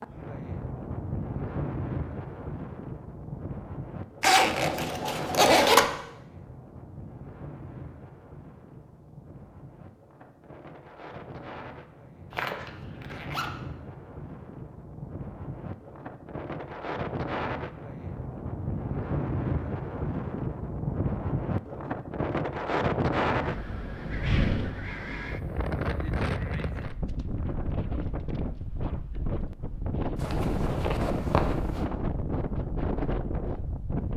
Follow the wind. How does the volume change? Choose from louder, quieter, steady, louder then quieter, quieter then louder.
quieter then louder.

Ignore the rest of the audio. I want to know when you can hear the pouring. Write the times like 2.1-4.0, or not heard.
4.7-5.5.